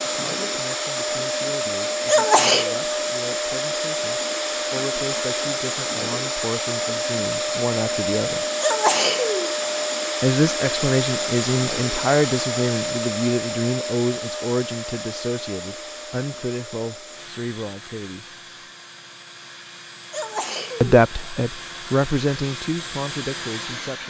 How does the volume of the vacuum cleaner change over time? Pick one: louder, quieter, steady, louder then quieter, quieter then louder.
quieter.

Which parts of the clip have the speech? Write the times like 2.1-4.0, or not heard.
0.0-8.4, 10.2-18.4, 20.8-24.0.